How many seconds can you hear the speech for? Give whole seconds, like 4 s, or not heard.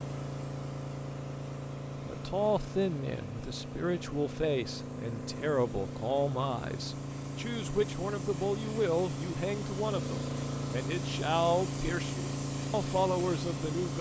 12 s.